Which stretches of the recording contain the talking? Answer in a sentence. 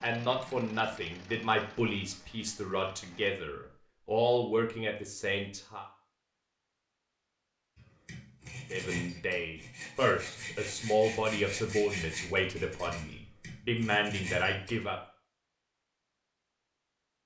The talking can be heard from 0.0 to 5.8 s and from 8.7 to 14.9 s.